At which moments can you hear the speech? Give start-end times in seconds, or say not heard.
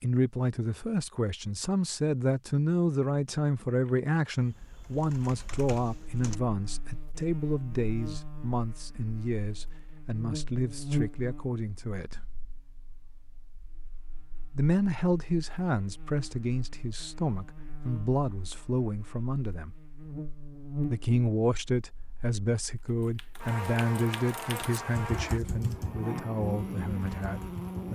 0.0-12.2, 14.6-19.8, 20.9-27.9.